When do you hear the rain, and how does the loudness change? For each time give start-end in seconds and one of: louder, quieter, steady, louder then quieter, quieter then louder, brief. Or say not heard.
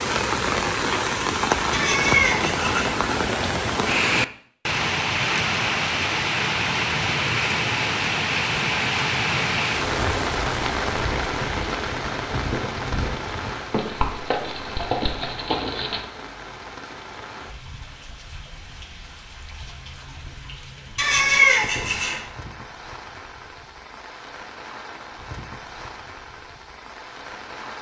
0.0-27.7 quieter.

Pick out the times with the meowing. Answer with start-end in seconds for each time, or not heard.
1.7-3.0, 20.9-22.2.